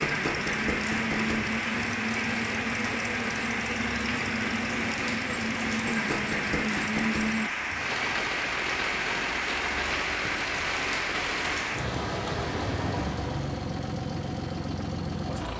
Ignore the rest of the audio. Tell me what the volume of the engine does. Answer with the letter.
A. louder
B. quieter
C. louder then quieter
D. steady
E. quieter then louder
D.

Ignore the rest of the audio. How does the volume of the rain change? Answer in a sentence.
The volume of the rain stays about the same.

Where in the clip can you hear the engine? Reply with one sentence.
You can hear the engine from 0.0 to 15.5 s.